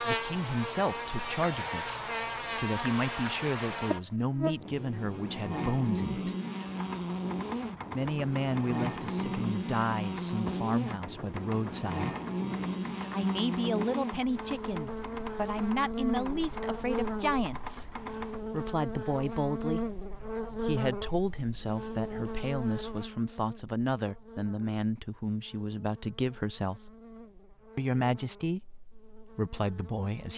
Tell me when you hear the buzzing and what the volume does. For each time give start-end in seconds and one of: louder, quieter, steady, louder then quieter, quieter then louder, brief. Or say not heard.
0.0-30.3 quieter.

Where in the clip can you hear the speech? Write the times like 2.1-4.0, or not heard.
0.0-6.3, 7.9-12.1, 13.1-19.8, 20.6-26.9, 27.8-30.3.